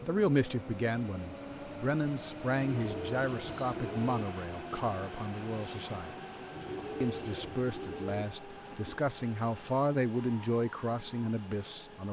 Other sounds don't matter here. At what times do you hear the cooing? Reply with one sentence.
You can hear the cooing from 2.6 to 4.2 s and from 6.5 to 8.2 s.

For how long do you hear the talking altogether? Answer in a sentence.
The talking can be heard for 11 seconds in total.